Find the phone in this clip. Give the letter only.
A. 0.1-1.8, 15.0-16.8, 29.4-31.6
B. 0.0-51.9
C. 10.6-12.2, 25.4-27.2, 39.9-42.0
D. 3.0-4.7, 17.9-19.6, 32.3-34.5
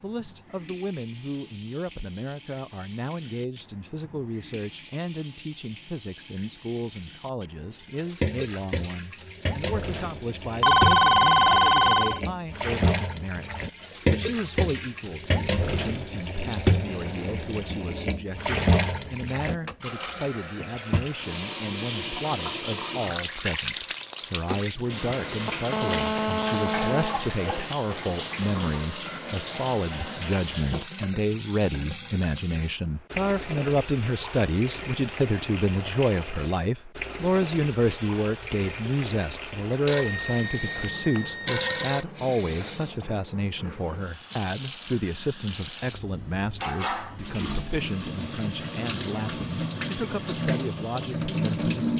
C.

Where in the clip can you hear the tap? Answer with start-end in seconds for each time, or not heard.
0.0-51.9.